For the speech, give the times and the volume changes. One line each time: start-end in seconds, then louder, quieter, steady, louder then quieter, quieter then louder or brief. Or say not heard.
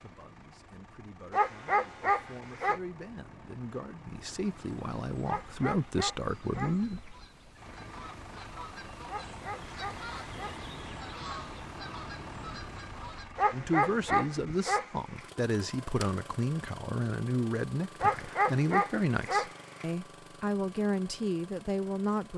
0.0-7.2 louder
13.5-22.3 steady.